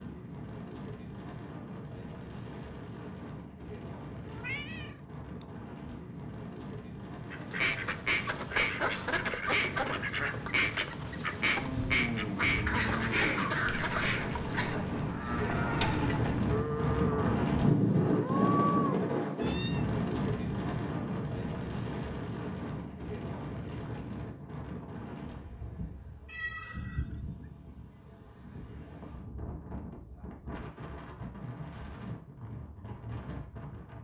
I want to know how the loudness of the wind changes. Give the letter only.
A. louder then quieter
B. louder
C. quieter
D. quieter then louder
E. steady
A.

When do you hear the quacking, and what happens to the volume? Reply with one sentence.
You can hear the quacking from 7.3 to 14.4 s, at a steady volume.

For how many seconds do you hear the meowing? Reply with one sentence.
You can hear the meowing for 3 seconds altogether.